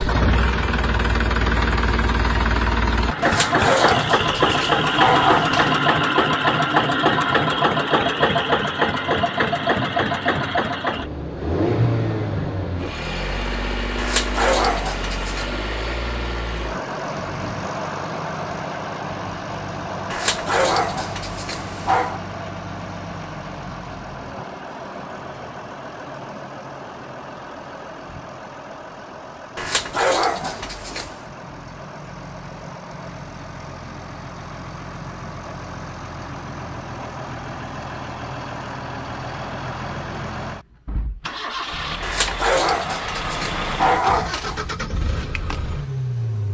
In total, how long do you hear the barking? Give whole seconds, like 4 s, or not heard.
11 s.